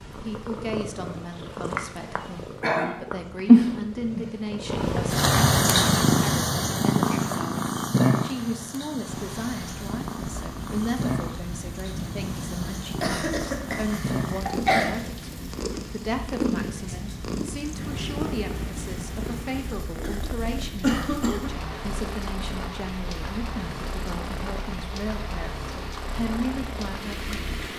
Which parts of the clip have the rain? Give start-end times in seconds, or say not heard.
9.1-27.7.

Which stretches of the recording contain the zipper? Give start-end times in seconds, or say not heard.
not heard.